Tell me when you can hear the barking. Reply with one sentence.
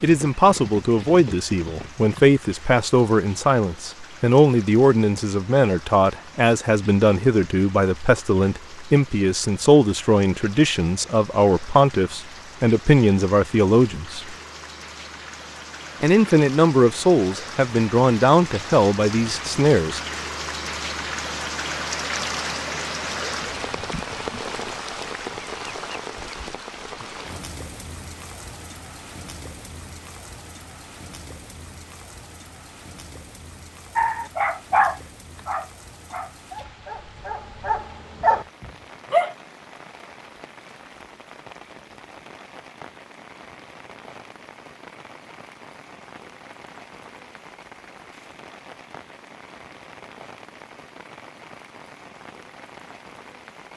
The barking can be heard from 34.0 to 39.4 s.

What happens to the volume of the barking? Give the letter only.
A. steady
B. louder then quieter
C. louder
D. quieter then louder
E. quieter
D.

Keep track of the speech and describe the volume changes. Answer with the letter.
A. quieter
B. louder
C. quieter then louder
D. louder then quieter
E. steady
E.